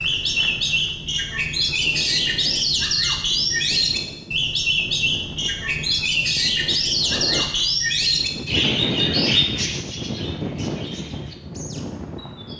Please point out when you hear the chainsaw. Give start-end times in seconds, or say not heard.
not heard.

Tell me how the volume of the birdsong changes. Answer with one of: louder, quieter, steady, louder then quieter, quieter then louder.
quieter.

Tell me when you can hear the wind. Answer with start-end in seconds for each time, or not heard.
0.0-12.5.